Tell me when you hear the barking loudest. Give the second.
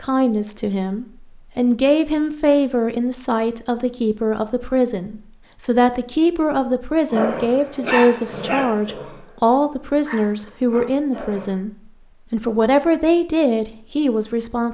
8 s.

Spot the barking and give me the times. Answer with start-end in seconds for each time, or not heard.
7.1-11.5.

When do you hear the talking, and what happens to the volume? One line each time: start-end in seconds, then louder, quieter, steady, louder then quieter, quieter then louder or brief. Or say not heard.
0.0-14.6 steady.